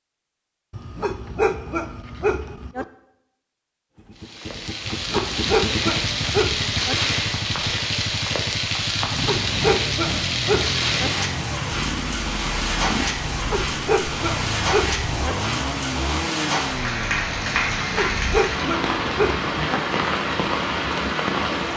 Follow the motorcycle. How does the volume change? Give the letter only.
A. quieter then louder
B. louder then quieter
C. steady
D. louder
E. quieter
C.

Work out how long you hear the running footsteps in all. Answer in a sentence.
The running footsteps can't be heard in this clip.